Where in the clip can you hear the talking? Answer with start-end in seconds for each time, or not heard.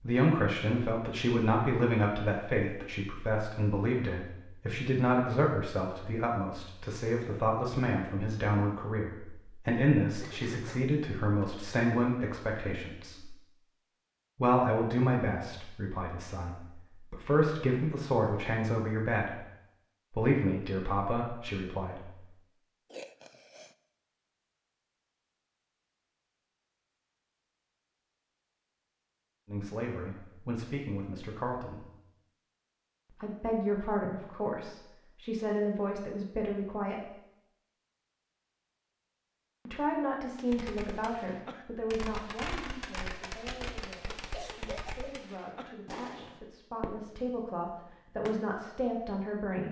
0.0-13.3, 14.3-19.4, 20.1-22.2, 29.4-31.9, 33.1-37.1, 39.6-49.6.